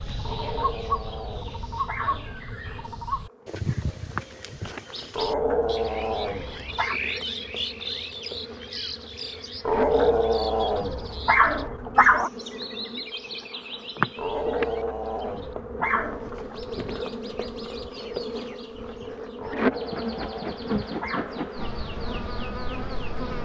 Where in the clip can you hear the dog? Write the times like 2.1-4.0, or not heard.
0.2-2.4, 5.2-7.0, 9.7-12.3, 14.2-16.6, 19.4-21.5.